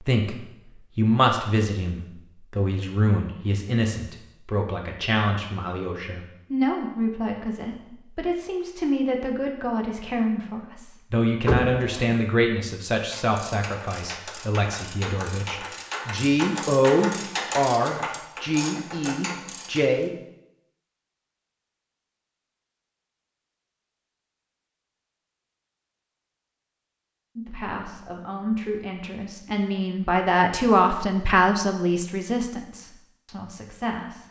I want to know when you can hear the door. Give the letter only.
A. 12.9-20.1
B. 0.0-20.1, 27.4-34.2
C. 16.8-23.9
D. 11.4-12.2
D.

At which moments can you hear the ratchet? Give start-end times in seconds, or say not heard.
12.9-20.1.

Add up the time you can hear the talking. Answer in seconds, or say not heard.
27 s.